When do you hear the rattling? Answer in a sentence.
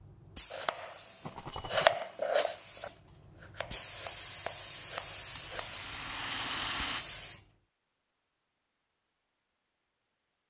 The rattling can be heard from 1.2 to 2.0 s and from 5.3 to 7.0 s.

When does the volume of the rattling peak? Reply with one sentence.
The volume of the rattling peaks at 7 seconds.